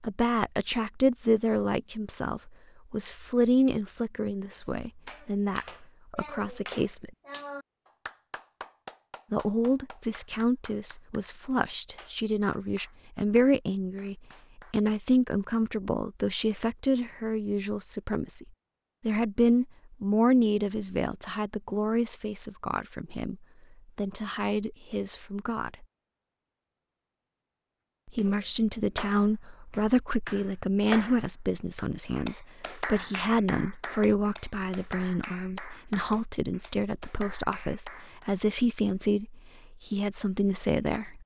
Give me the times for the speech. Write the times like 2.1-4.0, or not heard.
0.0-7.1, 9.3-18.4, 19.1-23.4, 23.9-25.9, 28.1-41.2.